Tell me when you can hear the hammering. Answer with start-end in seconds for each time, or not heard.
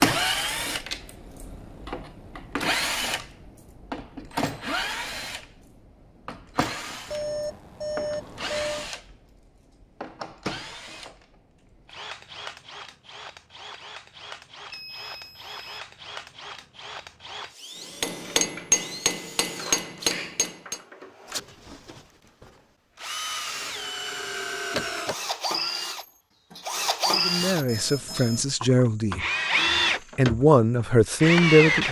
18.0-20.8.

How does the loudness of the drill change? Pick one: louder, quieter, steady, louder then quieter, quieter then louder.
quieter then louder.